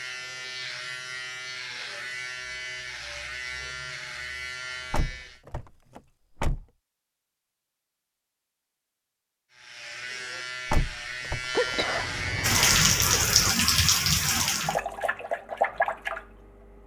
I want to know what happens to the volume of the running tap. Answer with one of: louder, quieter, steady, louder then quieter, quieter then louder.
quieter.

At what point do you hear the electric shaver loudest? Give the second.
12 s.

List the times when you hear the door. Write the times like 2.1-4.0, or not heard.
4.9-6.7, 10.7-11.8.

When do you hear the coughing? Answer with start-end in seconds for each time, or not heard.
11.6-13.6.